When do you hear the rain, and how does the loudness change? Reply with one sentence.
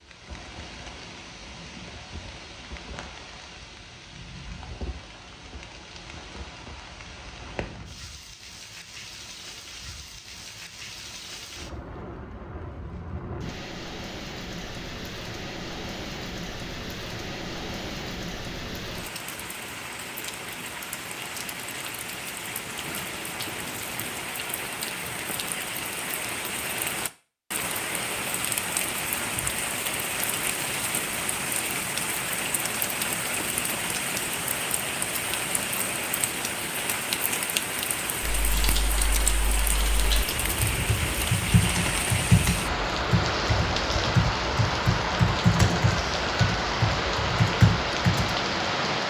The rain can be heard from 0.0 to 49.0 s, getting louder.